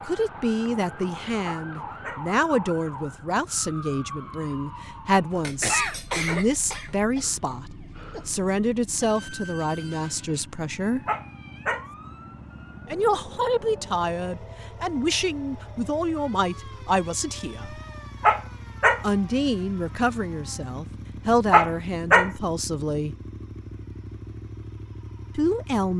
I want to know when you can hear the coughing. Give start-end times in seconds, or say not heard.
5.4-6.9.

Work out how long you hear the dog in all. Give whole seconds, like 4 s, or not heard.
4 s.